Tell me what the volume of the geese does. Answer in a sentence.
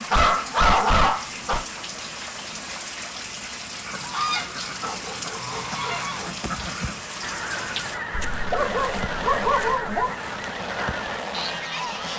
The volume of the geese stays about the same.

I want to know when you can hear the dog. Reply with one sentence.
You can hear the dog from 0.1 to 1.6 s, from 4.8 to 6.3 s and from 8.1 to 10.2 s.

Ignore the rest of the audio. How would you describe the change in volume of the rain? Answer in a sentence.
The loudness of the rain stays about the same.